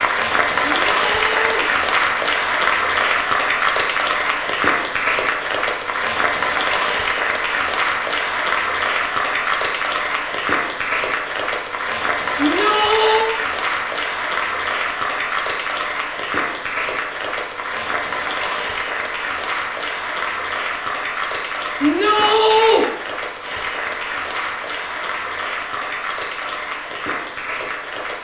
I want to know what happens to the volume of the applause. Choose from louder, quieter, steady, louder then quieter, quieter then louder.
quieter.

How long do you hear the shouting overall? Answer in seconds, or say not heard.
3 s.